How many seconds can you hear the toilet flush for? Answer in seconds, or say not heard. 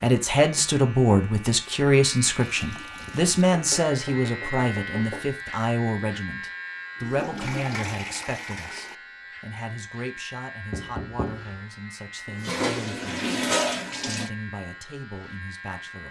5 s.